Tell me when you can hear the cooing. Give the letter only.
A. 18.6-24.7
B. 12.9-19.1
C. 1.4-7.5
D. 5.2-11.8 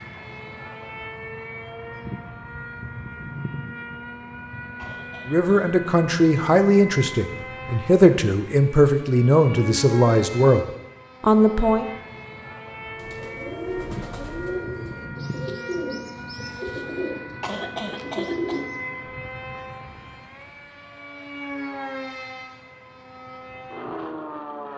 B.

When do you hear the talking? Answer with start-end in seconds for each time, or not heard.
5.2-11.8.